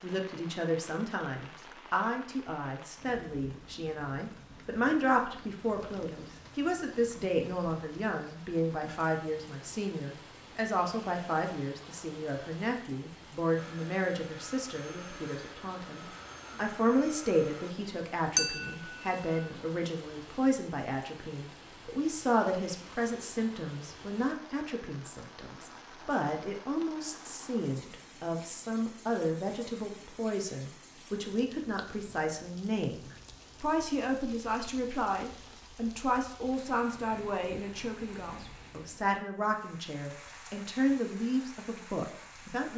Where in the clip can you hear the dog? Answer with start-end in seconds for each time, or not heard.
not heard.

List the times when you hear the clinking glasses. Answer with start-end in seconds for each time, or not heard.
18.4-19.4.